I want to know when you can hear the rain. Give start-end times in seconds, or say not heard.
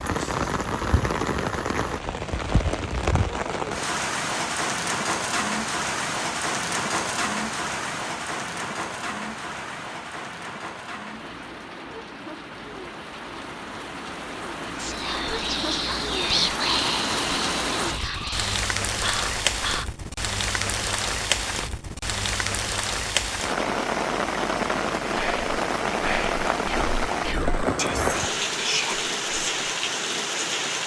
0.0-30.8.